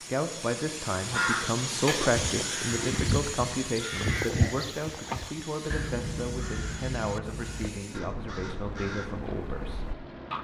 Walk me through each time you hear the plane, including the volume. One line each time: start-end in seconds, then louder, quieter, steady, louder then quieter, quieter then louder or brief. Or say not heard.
0.0-10.4 quieter.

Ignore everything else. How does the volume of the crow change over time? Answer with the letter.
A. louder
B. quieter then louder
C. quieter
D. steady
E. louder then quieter
C.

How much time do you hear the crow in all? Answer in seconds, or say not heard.
9 s.